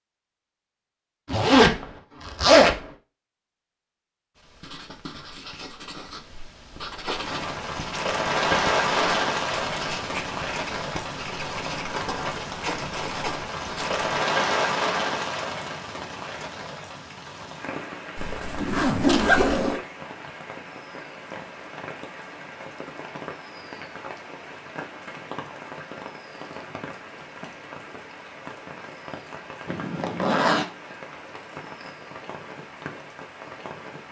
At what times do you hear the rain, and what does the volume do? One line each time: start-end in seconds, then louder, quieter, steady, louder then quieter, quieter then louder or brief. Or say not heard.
7.0-34.0 quieter.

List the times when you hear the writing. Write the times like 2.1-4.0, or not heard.
4.3-14.0.